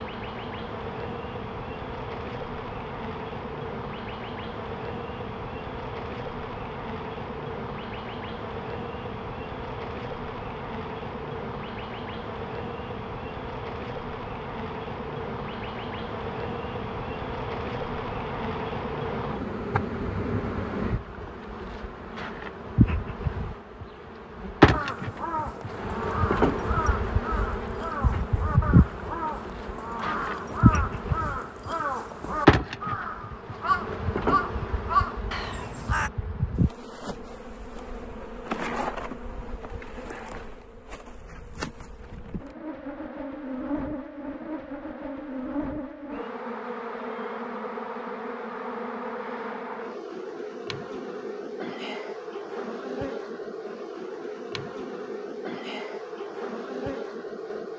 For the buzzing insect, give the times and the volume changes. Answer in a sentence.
The buzzing insect can be heard from 0.0 to 57.7 s, getting louder then quieter.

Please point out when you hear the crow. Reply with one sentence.
You can hear the crow from 24.7 to 36.1 s.